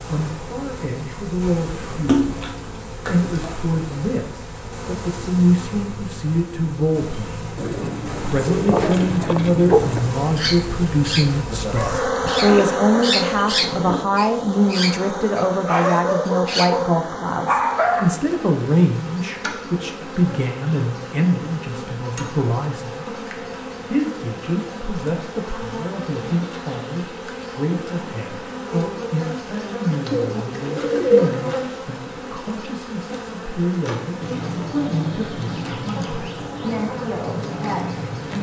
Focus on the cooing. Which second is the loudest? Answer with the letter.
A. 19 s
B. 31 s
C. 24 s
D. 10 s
B.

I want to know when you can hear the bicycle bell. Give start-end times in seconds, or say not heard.
not heard.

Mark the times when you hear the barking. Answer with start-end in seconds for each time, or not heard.
8.7-18.2.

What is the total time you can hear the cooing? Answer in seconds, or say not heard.
4 s.